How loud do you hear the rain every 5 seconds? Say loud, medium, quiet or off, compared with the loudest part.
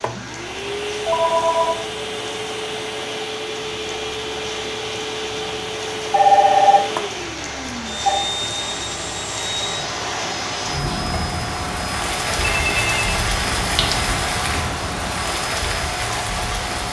medium, medium, loud, loud.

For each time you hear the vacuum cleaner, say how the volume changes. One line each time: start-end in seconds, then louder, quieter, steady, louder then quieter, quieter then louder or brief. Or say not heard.
0.0-16.8 steady.